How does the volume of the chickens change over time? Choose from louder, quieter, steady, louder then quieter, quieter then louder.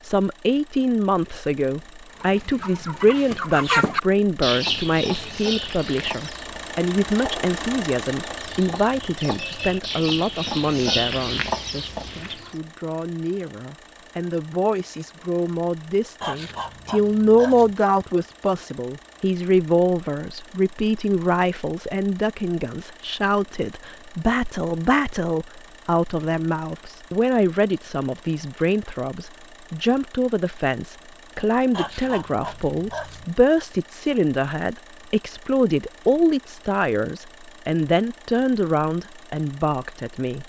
quieter then louder.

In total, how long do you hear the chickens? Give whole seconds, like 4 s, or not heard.
10 s.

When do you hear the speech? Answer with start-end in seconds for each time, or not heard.
0.0-40.4.